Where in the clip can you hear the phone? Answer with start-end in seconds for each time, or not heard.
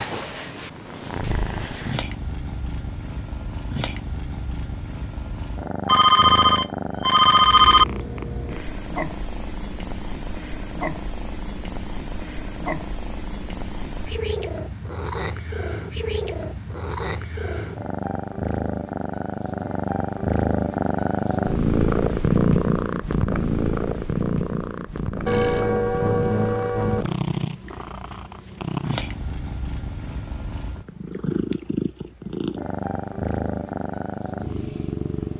5.8-7.8, 25.2-27.1.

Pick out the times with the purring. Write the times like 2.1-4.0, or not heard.
0.0-35.3.